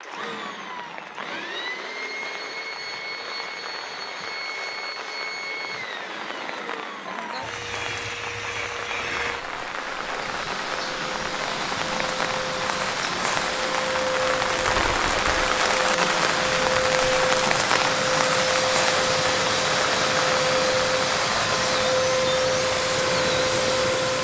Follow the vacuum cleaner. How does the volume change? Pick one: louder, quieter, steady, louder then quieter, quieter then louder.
louder.